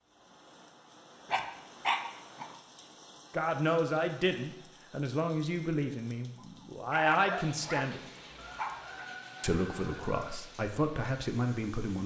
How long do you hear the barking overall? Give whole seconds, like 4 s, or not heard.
4 s.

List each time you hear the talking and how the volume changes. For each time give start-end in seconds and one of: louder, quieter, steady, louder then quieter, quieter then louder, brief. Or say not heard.
3.3-8.0 quieter then louder
9.4-12.0 brief.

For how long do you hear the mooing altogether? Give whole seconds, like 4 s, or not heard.
not heard.